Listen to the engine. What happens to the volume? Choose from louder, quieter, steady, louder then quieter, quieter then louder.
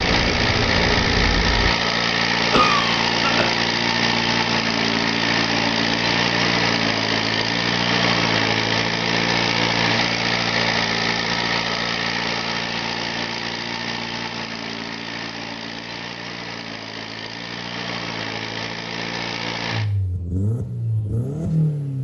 quieter.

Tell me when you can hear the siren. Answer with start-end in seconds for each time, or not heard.
0.0-1.7.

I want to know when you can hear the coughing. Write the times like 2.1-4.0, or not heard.
2.5-3.5.